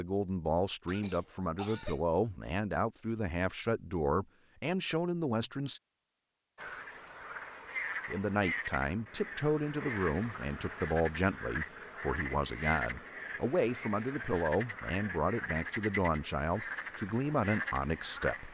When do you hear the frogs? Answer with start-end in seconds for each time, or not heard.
6.5-18.4.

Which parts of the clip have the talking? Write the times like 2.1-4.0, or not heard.
0.0-5.8, 8.1-18.4.